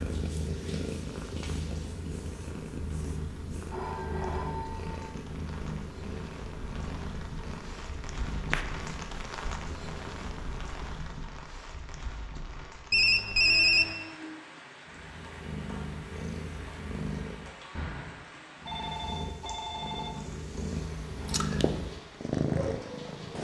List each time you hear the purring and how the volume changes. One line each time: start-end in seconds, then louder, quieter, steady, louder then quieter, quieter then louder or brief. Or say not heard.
0.0-11.2 quieter
14.8-17.6 brief
18.6-23.3 louder.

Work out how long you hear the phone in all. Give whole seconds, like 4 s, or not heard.
5 s.